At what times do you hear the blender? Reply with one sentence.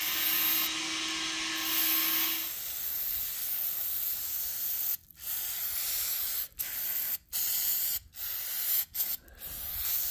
The blender can be heard from 0.0 to 2.5 s.